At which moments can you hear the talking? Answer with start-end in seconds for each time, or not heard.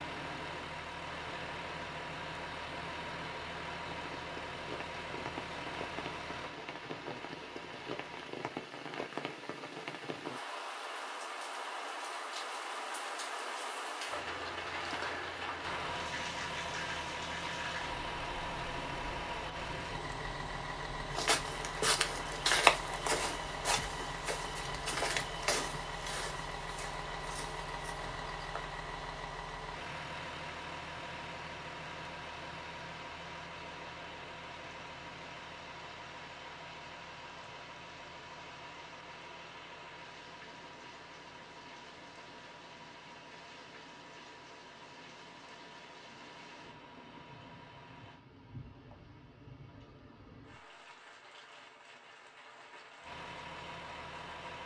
not heard.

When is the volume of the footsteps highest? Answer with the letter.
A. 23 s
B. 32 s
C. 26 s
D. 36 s
A.